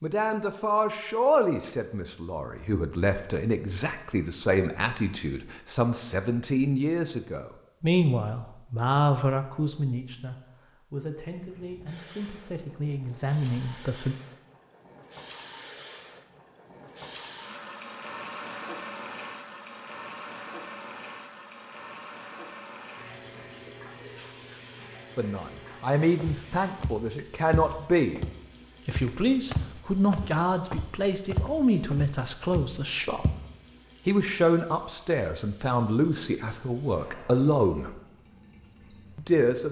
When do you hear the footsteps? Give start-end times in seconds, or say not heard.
26.1-33.5.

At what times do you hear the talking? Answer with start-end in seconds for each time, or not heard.
0.0-14.2, 25.1-28.2, 28.9-33.2, 34.0-38.0, 39.1-39.6.